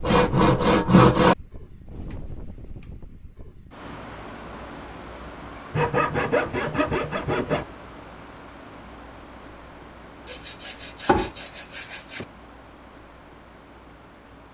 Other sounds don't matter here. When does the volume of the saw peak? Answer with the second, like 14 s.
1 s.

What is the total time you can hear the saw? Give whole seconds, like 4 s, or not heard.
5 s.